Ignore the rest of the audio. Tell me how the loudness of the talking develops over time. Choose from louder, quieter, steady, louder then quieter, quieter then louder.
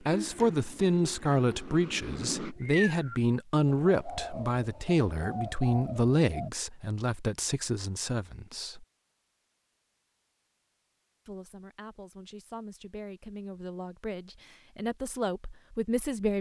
quieter then louder.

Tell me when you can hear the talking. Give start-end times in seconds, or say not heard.
0.1-8.8, 11.2-16.3.